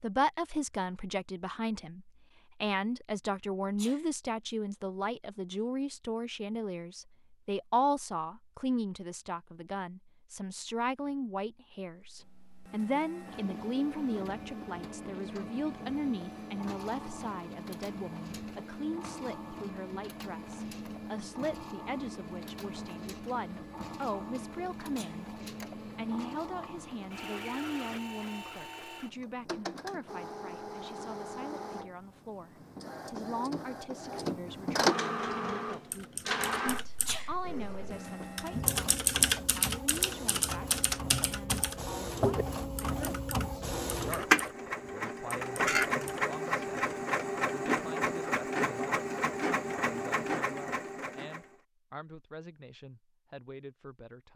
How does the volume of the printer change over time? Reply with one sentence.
The volume of the printer goes up.